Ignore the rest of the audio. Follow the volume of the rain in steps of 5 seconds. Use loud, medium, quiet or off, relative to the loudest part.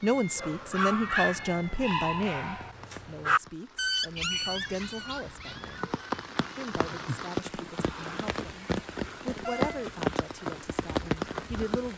quiet, loud, loud.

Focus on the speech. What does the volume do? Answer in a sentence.
The loudness of the speech goes down.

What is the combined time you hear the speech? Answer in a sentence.
The speech can be heard for 11 seconds in total.